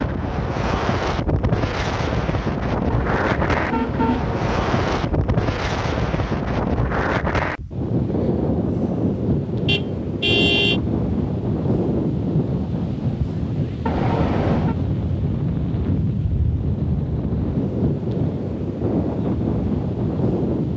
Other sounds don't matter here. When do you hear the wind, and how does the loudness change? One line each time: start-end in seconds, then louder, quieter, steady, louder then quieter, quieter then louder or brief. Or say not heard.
0.0-20.7 steady.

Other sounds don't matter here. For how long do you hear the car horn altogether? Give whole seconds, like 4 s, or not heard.
4 s.